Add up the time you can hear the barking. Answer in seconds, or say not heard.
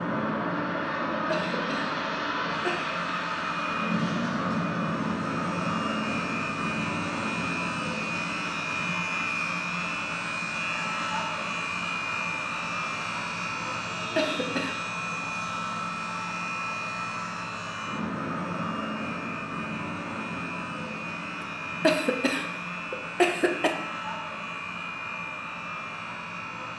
not heard.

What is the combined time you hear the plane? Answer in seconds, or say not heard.
27 s.